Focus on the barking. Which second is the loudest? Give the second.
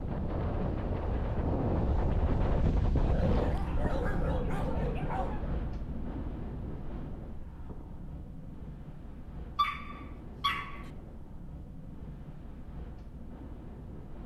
10 s.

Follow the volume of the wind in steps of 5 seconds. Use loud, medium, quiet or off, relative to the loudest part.
loud, medium, quiet.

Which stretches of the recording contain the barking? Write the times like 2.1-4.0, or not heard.
3.0-5.6, 9.6-10.8.